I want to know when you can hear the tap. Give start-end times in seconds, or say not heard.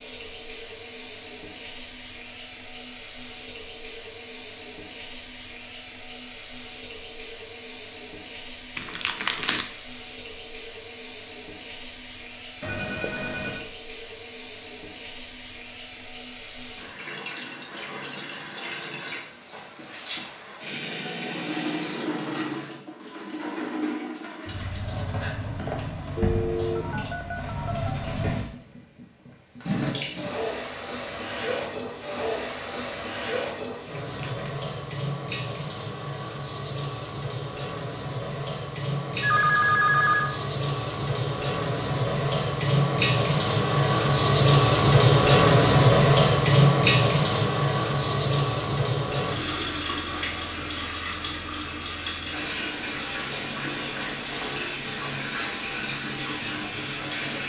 0.0-57.4.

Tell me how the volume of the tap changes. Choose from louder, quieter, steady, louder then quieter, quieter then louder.
louder.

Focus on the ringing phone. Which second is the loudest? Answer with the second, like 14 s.
40 s.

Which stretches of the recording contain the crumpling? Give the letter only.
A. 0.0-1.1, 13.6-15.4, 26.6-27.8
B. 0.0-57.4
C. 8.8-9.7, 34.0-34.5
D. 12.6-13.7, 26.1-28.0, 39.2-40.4
C.